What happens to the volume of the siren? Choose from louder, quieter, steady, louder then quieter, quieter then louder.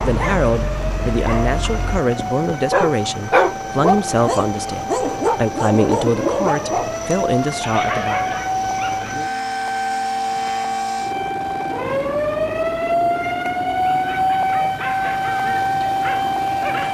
louder.